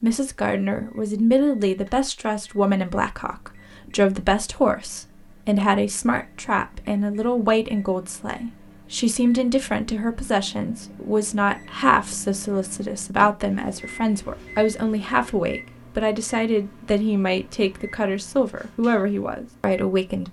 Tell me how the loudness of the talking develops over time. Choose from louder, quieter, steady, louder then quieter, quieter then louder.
steady.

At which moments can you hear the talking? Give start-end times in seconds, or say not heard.
0.0-20.2.